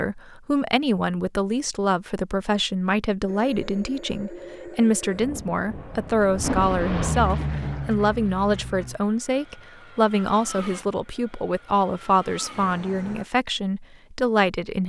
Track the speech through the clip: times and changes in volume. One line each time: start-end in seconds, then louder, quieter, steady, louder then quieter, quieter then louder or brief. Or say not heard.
0.0-14.8 steady.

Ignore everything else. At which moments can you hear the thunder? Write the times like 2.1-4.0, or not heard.
6.4-7.8.